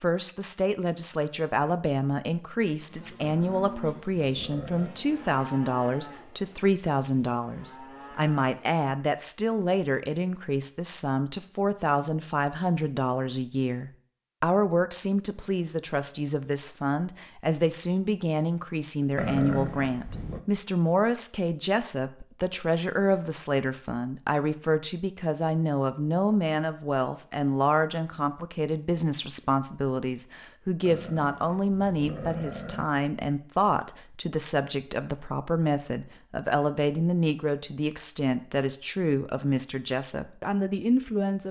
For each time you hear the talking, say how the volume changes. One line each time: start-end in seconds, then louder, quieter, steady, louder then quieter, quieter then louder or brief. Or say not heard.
0.0-41.4 steady.